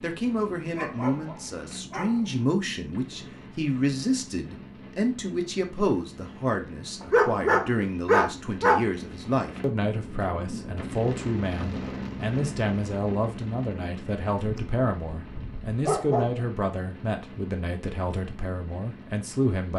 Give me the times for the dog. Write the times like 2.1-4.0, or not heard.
0.8-2.4, 7.0-8.8, 14.4-16.4.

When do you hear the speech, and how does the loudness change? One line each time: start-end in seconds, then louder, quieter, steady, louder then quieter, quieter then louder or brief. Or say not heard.
0.0-19.7 steady.